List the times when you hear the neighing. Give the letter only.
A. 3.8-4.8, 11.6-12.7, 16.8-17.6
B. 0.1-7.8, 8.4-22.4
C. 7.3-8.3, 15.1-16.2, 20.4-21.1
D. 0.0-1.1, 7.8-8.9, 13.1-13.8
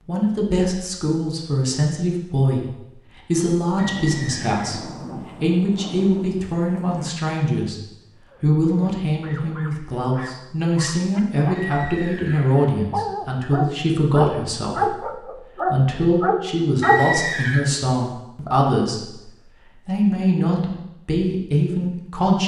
A.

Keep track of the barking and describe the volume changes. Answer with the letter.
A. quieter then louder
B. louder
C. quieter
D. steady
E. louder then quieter
B.